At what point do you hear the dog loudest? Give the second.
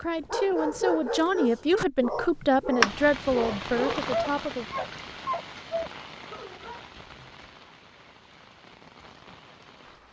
3 s.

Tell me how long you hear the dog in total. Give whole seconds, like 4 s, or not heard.
7 s.